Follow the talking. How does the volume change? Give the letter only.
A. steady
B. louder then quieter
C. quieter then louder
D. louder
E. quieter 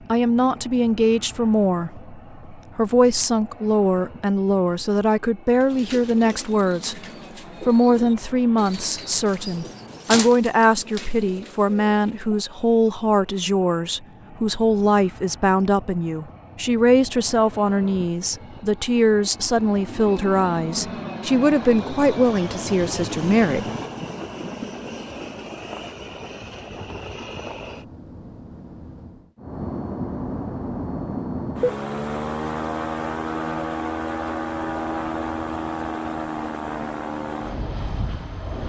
A.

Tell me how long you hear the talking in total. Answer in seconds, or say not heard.
23 s.